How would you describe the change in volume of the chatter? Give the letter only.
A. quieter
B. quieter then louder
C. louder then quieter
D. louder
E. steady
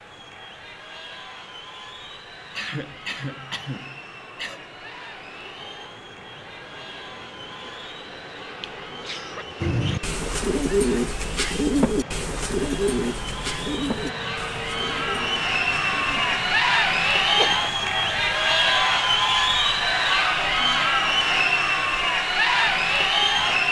D.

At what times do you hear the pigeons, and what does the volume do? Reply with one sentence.
You can hear the pigeons from 9.6 to 16.4 s, getting quieter.